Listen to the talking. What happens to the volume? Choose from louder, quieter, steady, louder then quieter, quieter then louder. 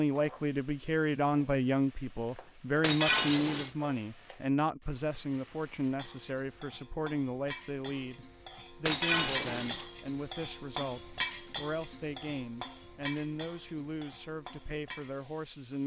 quieter.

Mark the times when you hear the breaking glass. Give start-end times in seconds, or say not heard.
2.8-3.7, 8.8-9.8.